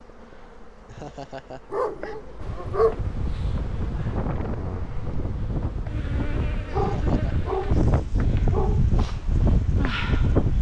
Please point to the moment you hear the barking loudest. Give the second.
3 s.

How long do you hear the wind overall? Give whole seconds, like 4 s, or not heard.
8 s.